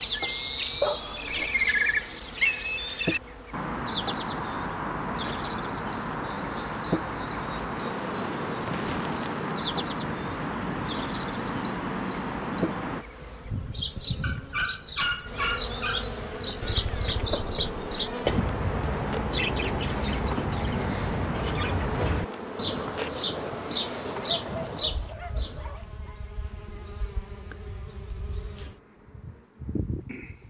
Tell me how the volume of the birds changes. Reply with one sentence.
The volume of the birds stays about the same.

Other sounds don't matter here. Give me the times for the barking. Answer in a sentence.
The barking can be heard from 0.8 to 1.4 s, from 14.2 to 16.1 s and from 24.2 to 26.1 s.